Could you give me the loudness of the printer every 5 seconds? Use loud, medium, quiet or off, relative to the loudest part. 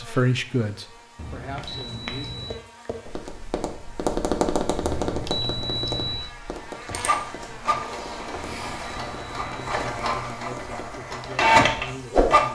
off, medium, loud.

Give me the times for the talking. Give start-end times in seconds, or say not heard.
0.0-2.5, 9.4-12.4.